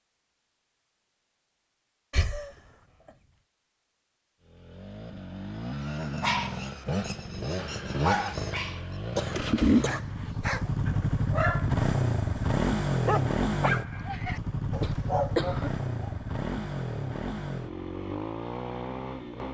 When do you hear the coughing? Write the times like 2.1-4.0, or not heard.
2.1-2.5, 9.2-10.1, 14.7-15.7.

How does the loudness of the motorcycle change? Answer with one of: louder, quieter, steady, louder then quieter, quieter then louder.
louder then quieter.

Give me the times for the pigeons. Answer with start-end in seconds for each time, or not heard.
not heard.